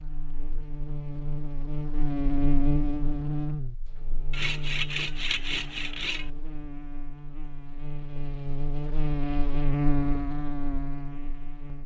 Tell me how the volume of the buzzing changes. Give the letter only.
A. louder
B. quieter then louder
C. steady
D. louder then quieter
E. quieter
B.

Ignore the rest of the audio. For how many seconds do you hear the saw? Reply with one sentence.
You can hear the saw for 2 seconds altogether.